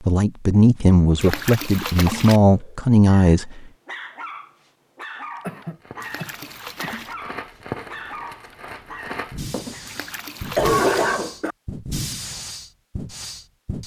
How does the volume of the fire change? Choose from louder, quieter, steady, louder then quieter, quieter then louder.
louder.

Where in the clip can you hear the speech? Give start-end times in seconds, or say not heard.
0.0-3.6.